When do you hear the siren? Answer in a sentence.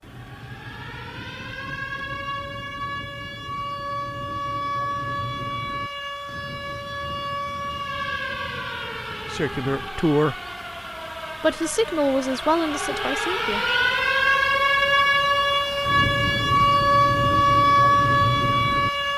You can hear the siren from 0.0 to 19.1 s.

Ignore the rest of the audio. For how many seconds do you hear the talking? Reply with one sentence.
The talking can be heard for 3 seconds in total.